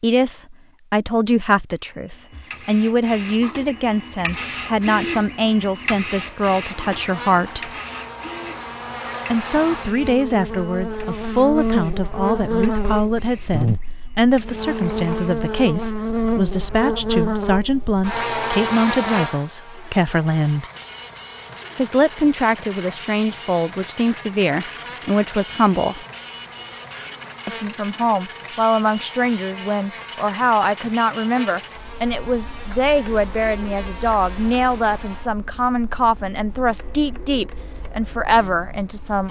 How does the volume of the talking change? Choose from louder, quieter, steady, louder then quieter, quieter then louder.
steady.